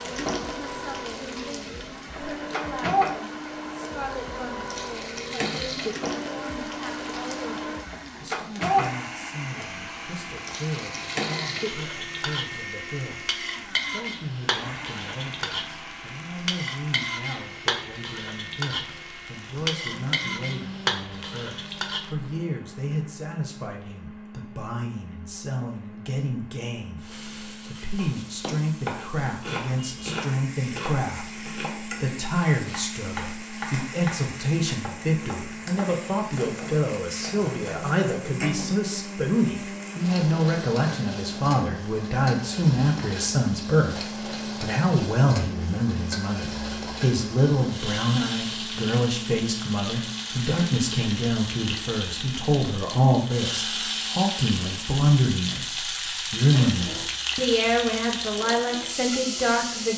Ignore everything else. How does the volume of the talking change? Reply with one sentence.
The volume of the talking goes up.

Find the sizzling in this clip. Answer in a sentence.
The sizzling can be heard from 0.0 to 22.1 s and from 26.9 to 59.9 s.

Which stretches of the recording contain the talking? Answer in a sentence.
You can hear the talking from 0.0 to 44.0 s and from 44.6 to 59.9 s.